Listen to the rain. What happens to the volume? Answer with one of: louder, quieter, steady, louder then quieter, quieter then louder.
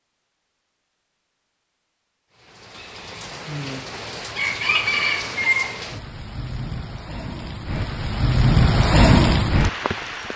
louder.